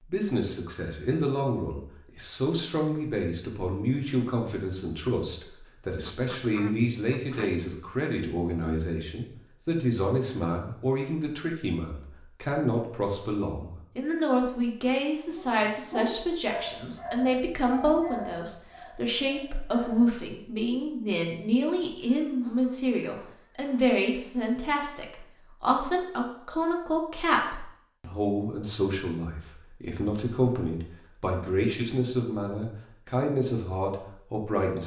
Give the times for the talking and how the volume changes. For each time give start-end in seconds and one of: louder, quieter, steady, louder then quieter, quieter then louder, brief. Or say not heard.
0.1-34.8 steady.